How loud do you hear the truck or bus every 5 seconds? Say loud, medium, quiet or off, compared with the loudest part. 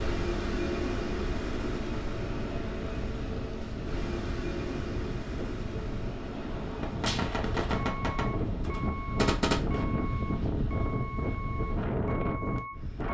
loud, medium, medium.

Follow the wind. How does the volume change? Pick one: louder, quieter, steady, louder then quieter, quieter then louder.
louder.